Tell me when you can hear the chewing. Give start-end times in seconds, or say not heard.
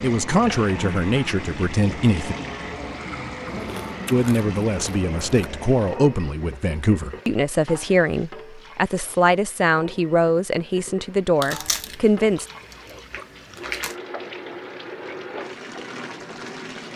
3.5-5.5, 11.4-13.9.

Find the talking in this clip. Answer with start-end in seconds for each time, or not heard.
0.0-2.4, 4.1-12.4.